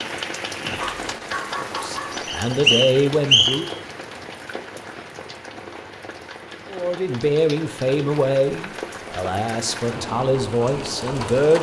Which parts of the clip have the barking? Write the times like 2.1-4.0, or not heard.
0.8-2.2.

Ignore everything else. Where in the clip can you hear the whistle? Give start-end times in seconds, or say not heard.
2.2-3.7.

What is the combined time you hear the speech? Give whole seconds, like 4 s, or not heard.
7 s.